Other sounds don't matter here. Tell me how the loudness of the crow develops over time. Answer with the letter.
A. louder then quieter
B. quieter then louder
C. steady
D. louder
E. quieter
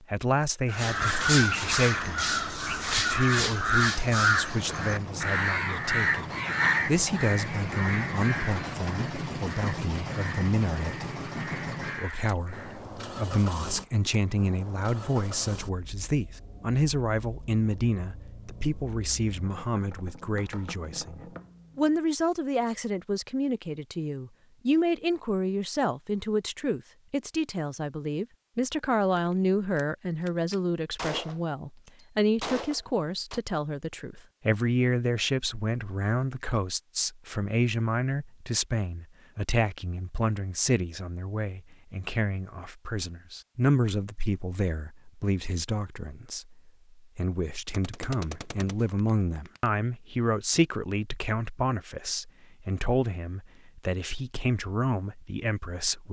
E.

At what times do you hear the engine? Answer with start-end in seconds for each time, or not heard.
4.4-22.0.